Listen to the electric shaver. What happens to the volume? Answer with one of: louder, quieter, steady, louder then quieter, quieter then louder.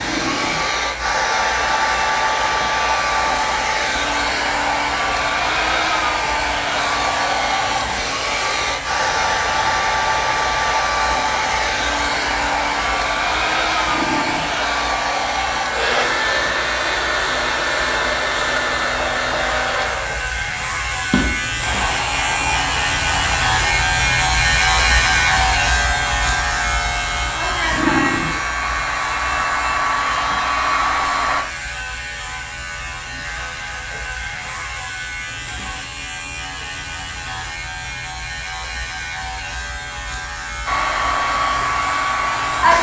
louder then quieter.